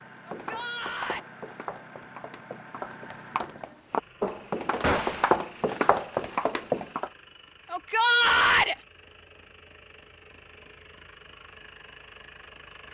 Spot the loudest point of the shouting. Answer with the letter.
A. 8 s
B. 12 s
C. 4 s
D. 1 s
A.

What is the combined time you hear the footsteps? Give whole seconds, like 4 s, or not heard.
7 s.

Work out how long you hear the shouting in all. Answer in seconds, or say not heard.
2 s.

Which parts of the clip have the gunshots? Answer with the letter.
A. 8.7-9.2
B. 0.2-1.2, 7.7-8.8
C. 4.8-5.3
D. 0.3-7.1
C.